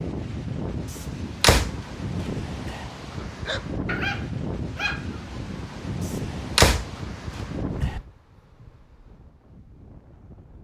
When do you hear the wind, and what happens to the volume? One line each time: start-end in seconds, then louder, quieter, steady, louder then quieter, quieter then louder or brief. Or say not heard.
0.0-10.6 quieter.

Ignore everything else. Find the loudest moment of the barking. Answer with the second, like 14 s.
4 s.